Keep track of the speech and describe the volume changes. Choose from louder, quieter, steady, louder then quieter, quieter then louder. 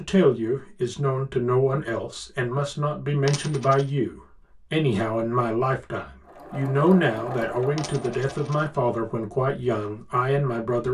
steady.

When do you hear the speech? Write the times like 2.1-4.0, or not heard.
0.0-10.9.